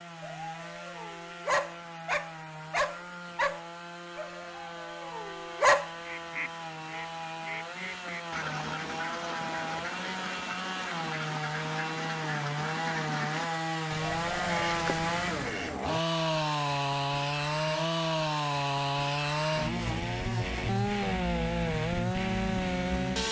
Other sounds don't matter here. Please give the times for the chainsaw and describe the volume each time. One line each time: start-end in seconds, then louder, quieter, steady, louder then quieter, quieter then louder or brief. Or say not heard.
0.0-23.2 louder.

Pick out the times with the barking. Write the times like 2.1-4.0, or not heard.
0.2-5.9.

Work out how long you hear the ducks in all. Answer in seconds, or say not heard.
10 s.